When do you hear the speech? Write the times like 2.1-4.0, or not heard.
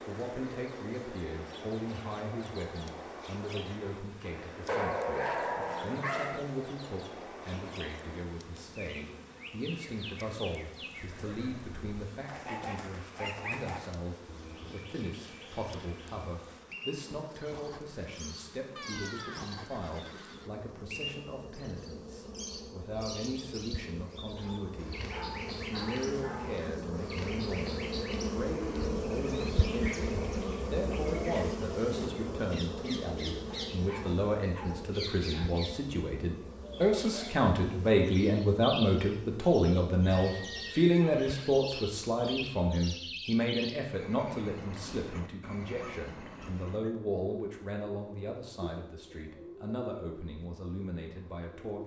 0.1-51.8.